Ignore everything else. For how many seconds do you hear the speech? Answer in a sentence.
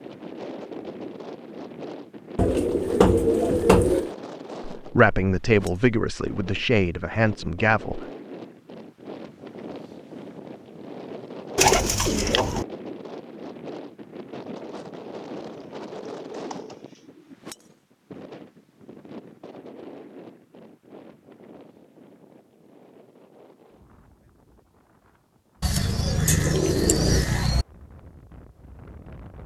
You can hear the speech for 3 seconds altogether.